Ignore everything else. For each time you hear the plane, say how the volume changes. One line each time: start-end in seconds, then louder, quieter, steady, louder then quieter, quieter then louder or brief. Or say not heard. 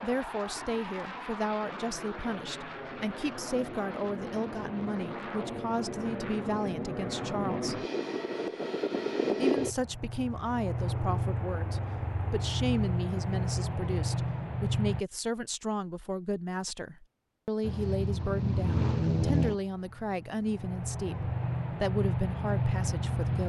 0.0-15.1 louder
17.6-23.4 quieter then louder.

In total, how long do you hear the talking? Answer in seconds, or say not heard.
22 s.